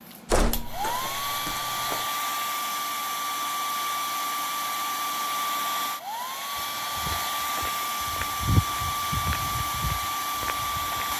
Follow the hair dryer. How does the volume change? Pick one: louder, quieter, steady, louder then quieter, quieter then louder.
steady.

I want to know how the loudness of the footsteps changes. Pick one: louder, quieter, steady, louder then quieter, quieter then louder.
louder then quieter.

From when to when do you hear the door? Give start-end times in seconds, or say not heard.
0.3-2.0.